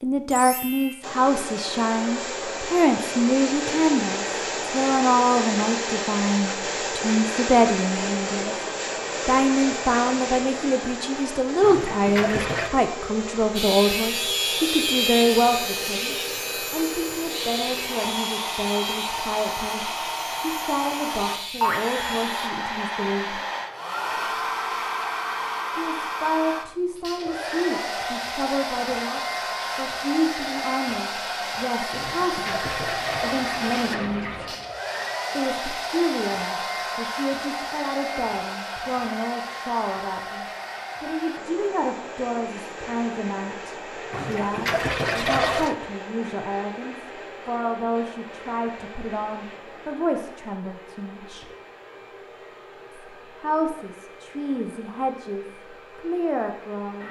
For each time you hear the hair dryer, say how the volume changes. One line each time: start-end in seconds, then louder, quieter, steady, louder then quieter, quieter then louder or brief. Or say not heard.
0.2-57.0 quieter.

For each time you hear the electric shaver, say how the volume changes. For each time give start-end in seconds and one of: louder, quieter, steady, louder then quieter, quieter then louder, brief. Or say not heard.
13.6-22.5 quieter.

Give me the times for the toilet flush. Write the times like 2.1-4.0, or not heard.
11.6-12.7, 31.9-34.6, 44.1-45.8.